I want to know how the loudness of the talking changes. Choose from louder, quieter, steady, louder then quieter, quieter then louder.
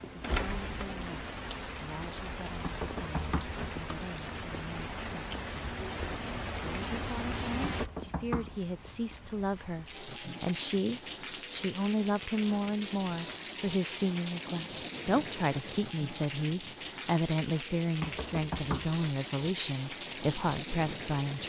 louder.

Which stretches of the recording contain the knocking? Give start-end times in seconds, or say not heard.
2.6-3.5, 7.6-8.9, 18.0-18.9.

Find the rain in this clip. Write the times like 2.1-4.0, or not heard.
0.0-21.4.